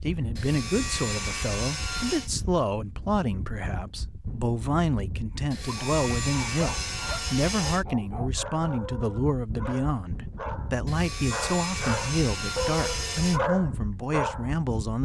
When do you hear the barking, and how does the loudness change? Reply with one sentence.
You can hear the barking from 5.7 to 15.0 s, getting louder.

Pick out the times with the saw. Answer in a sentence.
You can hear the saw from 0.3 to 2.3 s, from 5.5 to 7.8 s and from 10.8 to 13.4 s.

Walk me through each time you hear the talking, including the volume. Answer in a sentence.
The talking can be heard from 0.0 to 15.0 s, at a steady volume.